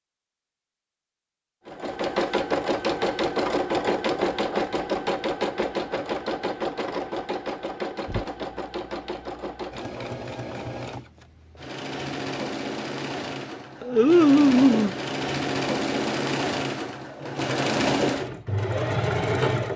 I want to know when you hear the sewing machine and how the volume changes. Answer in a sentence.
The sewing machine can be heard from 1.6 to 19.7 s, getting quieter then louder.